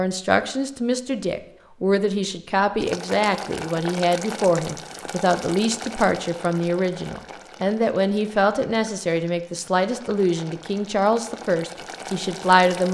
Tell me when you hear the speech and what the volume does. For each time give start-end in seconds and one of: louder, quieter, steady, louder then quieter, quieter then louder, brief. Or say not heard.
0.0-12.8 steady.